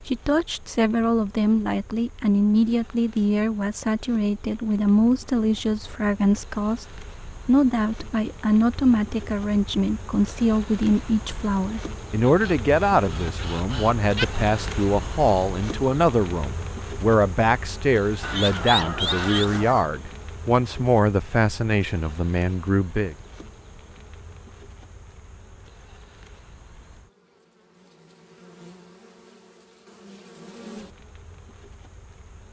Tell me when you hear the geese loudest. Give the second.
19 s.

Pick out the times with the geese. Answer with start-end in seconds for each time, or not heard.
12.2-14.2, 18.2-19.9.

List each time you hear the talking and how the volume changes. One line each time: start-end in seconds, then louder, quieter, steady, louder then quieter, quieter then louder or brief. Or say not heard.
0.1-23.1 steady.